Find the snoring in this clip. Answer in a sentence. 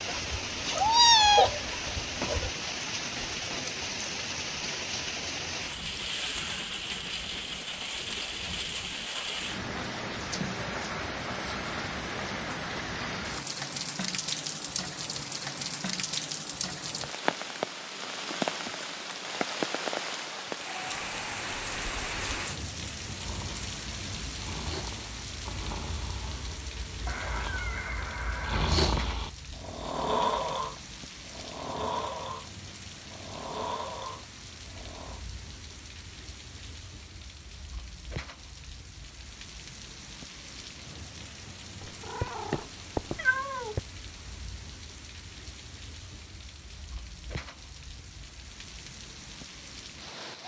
You can hear the snoring from 23.1 to 35.2 s.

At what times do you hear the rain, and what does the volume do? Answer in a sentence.
The rain can be heard from 0.0 to 50.4 s, getting quieter.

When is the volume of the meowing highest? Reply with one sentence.
The volume of the meowing peaks at 1 second.